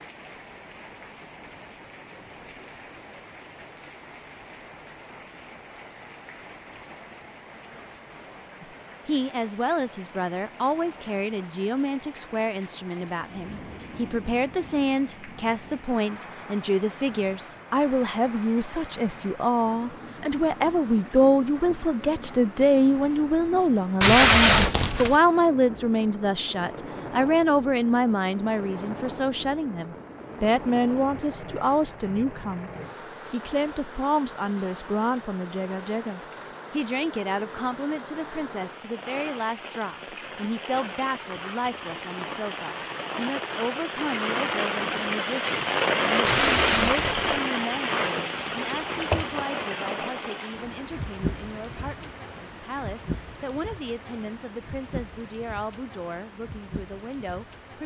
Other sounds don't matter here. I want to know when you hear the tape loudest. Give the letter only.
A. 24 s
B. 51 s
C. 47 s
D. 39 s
A.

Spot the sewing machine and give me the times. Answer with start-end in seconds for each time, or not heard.
not heard.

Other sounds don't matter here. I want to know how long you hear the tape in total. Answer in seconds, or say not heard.
2 s.